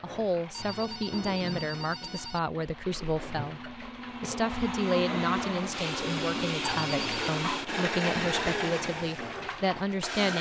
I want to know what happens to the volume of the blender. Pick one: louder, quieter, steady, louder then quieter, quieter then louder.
louder.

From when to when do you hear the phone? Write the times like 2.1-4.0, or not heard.
0.5-2.4, 6.6-7.4.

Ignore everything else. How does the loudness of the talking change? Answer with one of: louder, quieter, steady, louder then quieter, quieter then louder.
steady.